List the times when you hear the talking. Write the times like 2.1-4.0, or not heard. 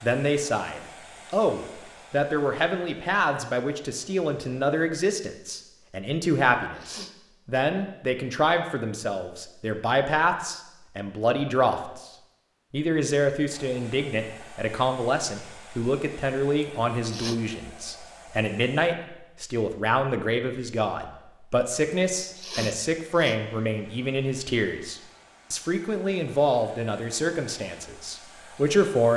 0.0-12.1, 12.7-29.1.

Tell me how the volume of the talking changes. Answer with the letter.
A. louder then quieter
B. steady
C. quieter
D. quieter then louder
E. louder
B.